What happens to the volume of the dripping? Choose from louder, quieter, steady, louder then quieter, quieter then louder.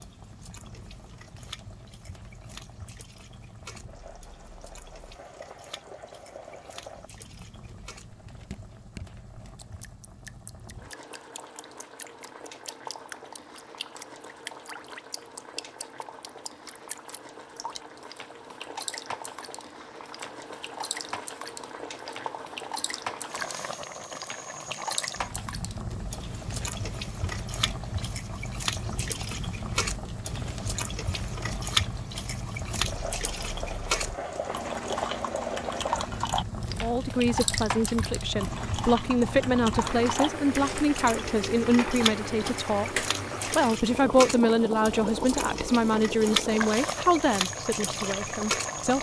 louder.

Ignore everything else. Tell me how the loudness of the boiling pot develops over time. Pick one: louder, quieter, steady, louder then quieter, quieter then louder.
louder.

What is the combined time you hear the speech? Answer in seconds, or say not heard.
12 s.